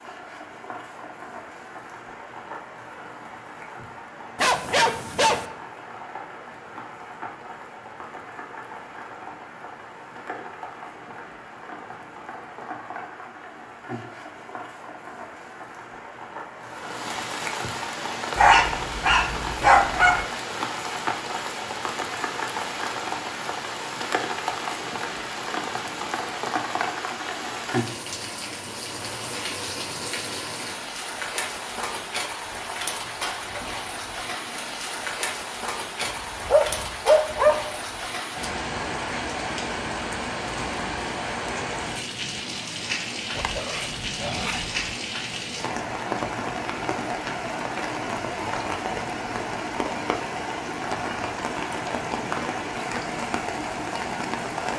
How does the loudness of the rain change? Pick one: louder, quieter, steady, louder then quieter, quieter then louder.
louder.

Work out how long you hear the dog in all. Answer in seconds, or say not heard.
6 s.